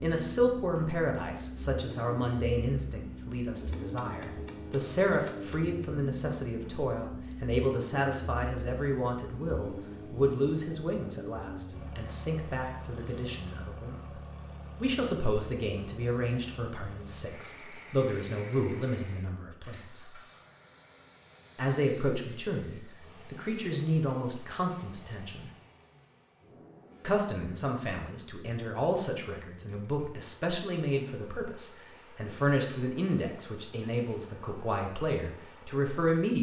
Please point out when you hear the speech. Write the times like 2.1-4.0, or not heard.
0.0-14.0, 14.8-20.1, 21.6-25.5, 27.0-36.3.